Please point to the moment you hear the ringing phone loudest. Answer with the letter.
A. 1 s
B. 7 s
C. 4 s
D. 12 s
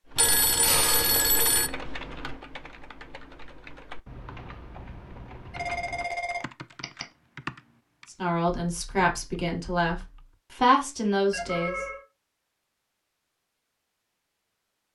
A.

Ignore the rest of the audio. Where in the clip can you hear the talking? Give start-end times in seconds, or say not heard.
8.1-11.8.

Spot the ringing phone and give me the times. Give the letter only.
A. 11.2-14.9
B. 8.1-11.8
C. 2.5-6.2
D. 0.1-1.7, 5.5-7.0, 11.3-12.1
D.